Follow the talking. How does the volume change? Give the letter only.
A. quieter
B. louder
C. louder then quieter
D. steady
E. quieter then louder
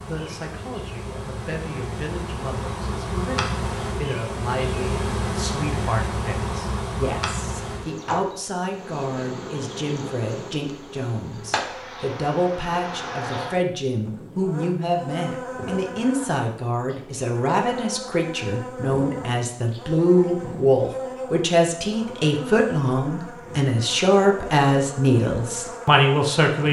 B.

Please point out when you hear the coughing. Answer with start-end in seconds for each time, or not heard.
not heard.